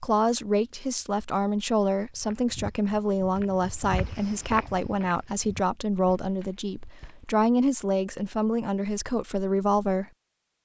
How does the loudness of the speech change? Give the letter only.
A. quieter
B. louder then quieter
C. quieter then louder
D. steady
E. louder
D.